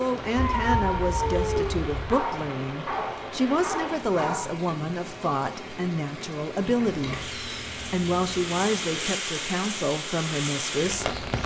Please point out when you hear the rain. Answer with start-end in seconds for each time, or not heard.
0.0-11.4.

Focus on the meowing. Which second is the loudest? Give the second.
1 s.